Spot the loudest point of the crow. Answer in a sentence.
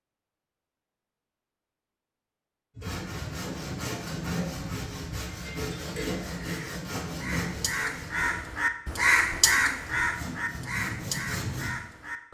The loudest moment of the crow is at 9 seconds.